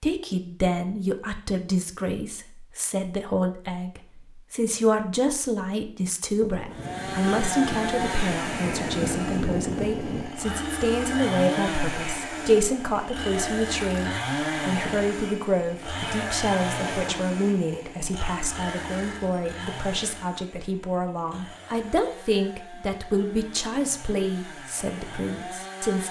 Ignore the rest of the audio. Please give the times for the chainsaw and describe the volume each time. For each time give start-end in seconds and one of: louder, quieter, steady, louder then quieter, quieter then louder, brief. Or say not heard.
6.7-26.0 quieter.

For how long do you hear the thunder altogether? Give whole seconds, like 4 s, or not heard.
4 s.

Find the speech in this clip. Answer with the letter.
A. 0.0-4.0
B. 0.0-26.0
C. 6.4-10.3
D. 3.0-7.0
B.